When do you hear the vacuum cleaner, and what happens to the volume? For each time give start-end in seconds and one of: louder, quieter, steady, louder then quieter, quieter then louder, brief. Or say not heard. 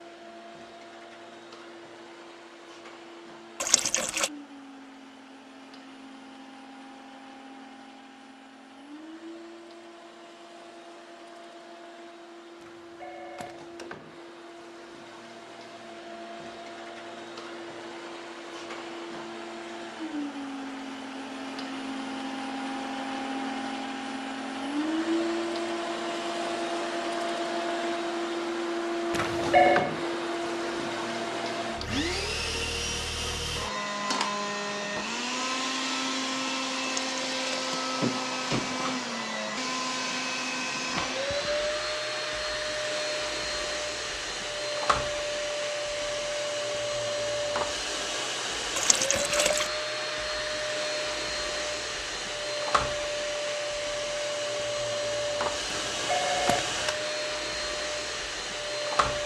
0.0-59.2 louder.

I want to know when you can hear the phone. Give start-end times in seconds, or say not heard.
12.6-13.9, 29.1-29.9, 55.7-57.0.